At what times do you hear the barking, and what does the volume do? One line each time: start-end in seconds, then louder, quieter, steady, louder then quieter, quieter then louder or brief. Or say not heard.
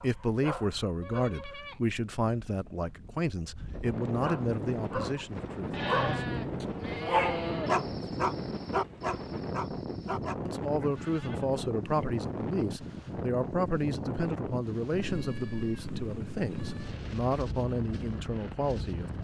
0.0-1.4 brief
4.2-10.3 louder then quieter.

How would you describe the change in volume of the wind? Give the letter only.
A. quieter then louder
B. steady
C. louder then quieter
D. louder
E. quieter
D.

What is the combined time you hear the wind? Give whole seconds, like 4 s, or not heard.
19 s.